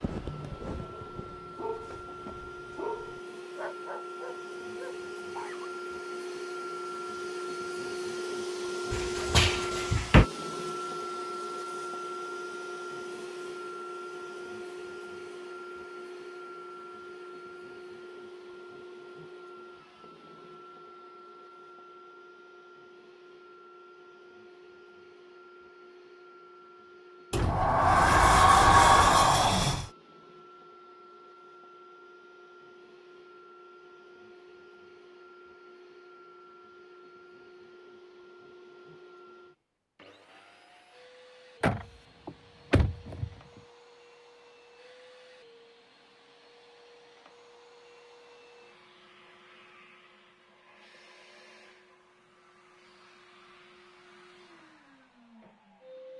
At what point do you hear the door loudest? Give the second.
29 s.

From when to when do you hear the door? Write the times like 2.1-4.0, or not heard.
8.9-10.2, 27.3-29.9, 41.6-43.3.